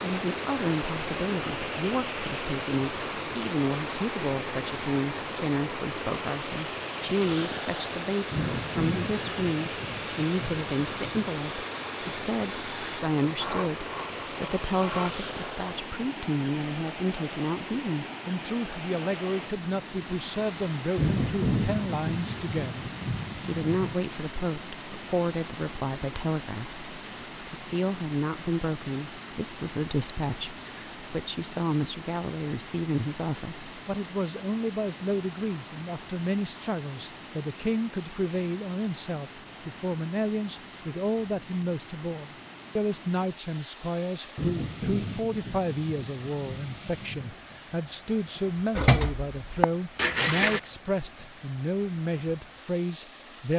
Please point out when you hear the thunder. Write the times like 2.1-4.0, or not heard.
8.3-11.3, 20.9-23.9, 44.4-47.4.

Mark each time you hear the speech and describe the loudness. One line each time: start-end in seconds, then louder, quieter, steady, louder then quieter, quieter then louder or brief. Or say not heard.
0.0-53.5 steady.